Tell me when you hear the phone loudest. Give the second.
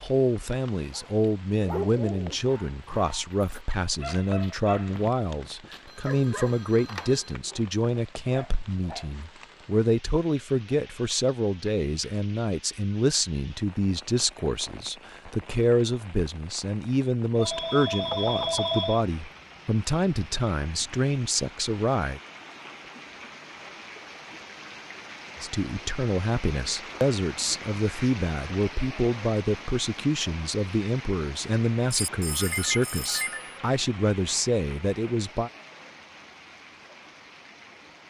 19 s.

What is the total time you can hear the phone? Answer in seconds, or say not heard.
5 s.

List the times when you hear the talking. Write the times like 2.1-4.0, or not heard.
0.0-22.2, 25.4-35.5.